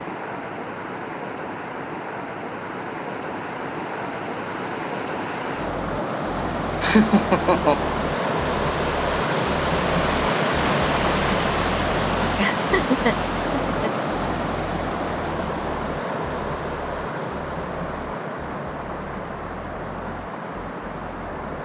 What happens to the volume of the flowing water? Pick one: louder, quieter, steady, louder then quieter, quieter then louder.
louder then quieter.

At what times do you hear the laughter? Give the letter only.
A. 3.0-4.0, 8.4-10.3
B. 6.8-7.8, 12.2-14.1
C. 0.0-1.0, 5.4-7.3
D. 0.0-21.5
B.